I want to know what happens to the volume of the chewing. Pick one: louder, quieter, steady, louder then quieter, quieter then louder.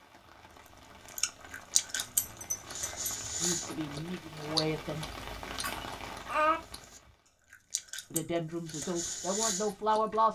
quieter then louder.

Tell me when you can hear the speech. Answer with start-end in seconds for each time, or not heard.
3.4-5.0, 8.1-10.3.